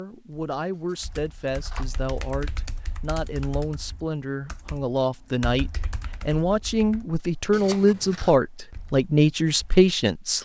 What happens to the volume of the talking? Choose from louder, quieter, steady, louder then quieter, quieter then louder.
louder.